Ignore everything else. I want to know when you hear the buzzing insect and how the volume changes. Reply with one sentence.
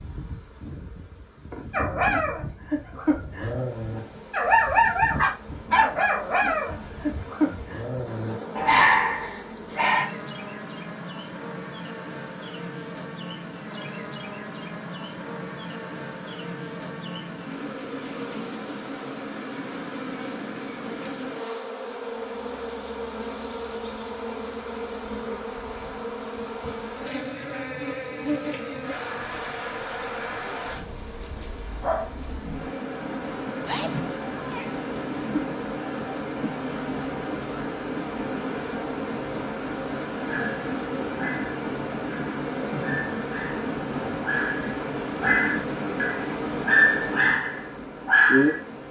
The buzzing insect can be heard from 0.0 to 48.8 s, getting louder.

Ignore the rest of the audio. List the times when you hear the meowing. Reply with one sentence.
You can hear the meowing from 33.6 to 34.8 s.